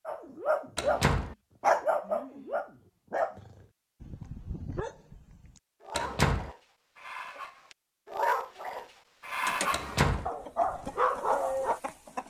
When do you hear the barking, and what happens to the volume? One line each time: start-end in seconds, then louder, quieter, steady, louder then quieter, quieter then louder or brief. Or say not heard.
0.1-11.8 quieter then louder.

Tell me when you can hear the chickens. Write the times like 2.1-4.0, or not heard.
9.3-12.2.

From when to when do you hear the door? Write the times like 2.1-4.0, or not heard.
0.8-1.4, 6.0-6.5, 9.7-10.3.